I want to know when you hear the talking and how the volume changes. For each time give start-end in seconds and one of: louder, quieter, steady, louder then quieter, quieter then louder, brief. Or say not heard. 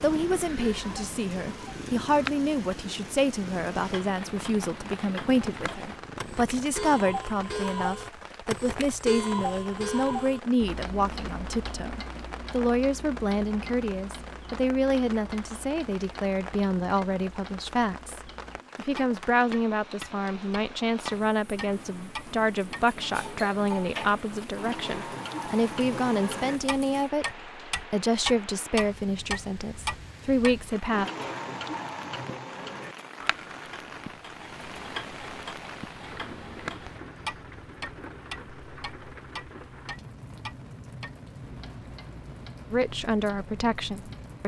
0.0-31.1 steady
42.7-44.4 brief.